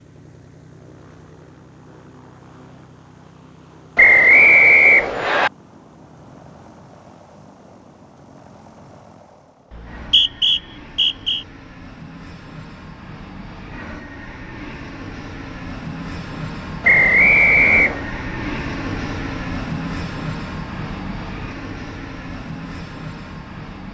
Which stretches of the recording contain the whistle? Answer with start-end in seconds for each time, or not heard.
4.0-5.5, 9.7-11.4, 16.8-18.1.